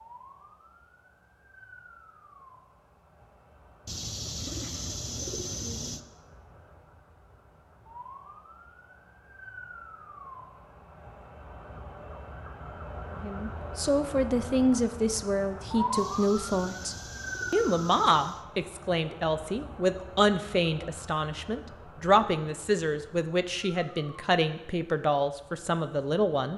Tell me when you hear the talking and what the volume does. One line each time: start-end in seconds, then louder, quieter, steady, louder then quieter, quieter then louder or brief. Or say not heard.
13.1-26.5 steady.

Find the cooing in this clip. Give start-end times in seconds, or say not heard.
3.9-6.0, 15.9-18.4.